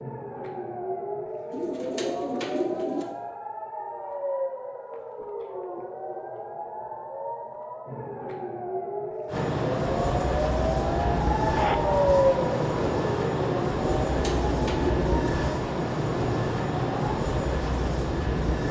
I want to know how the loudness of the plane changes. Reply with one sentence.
The loudness of the plane stays about the same.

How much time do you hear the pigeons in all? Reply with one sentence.
The pigeons can be heard for 3 seconds in total.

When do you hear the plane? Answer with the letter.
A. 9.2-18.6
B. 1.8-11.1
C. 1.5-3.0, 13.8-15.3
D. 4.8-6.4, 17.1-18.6
A.